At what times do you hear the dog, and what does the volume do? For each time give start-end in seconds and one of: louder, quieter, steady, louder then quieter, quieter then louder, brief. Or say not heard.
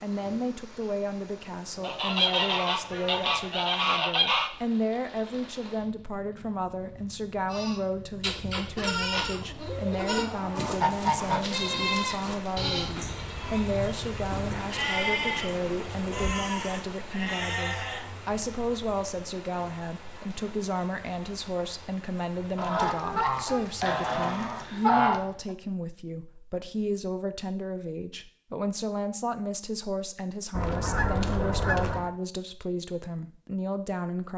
not heard.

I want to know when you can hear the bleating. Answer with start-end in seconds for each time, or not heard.
7.5-18.1.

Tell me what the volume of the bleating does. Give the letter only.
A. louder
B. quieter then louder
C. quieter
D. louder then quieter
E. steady
E.